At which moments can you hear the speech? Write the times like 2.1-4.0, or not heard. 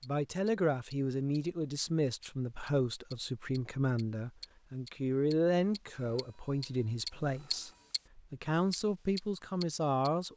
0.0-10.3.